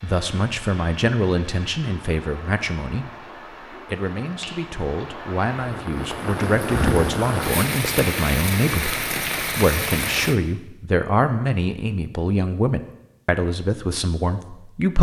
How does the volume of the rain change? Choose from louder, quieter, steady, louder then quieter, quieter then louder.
louder.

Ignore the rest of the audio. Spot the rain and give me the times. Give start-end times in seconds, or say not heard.
0.0-10.3.